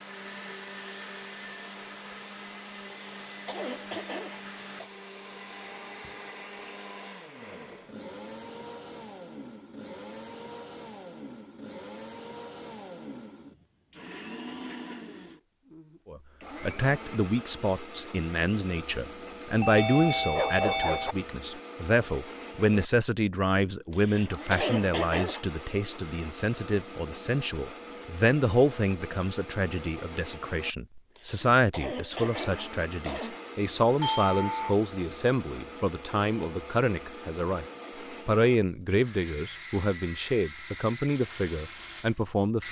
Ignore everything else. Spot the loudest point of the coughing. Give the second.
25 s.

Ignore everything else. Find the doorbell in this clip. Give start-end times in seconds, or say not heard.
0.1-1.6, 19.6-21.1, 34.0-34.8.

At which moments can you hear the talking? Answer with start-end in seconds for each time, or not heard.
16.1-37.6, 38.2-42.6.